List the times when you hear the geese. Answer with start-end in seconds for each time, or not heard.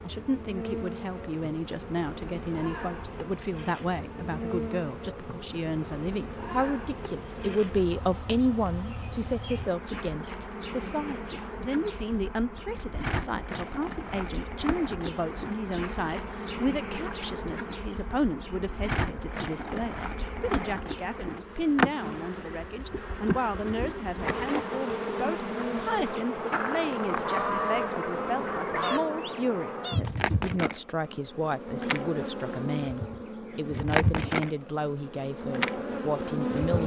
27.0-29.0.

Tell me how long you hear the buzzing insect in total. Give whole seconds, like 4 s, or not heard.
37 s.